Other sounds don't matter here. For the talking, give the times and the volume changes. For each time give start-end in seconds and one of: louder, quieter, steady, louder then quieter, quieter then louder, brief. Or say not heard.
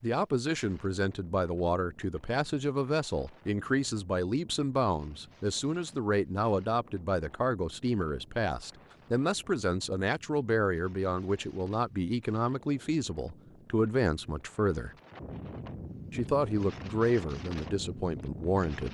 0.0-14.9 steady
16.1-18.8 brief.